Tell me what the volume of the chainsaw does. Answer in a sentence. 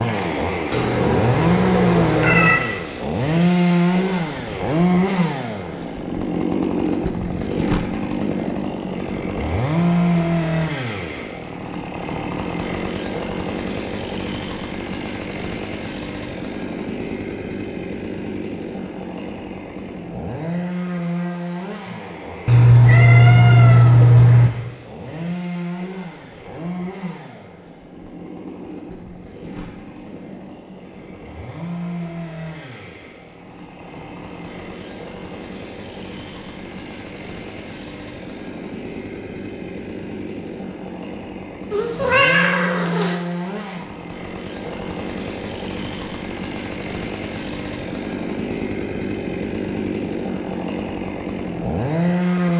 The loudness of the chainsaw goes down, then up.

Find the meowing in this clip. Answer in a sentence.
The meowing can be heard from 0.7 to 2.6 s, from 22.4 to 24.5 s and from 41.7 to 43.1 s.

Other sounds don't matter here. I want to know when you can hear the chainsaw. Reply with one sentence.
The chainsaw can be heard from 0.0 to 52.5 s.